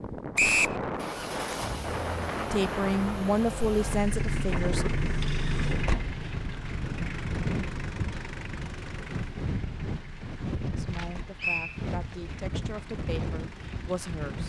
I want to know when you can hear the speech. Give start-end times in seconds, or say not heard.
2.5-4.9, 10.8-14.4.